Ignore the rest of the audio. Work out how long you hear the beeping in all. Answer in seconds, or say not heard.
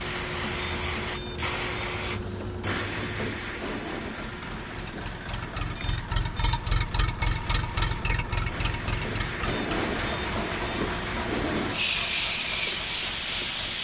4 s.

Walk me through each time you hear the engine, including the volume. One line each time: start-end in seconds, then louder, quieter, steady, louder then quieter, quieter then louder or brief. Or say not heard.
0.0-13.7 louder then quieter.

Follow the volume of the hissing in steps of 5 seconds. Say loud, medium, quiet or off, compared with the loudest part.
loud, medium, loud.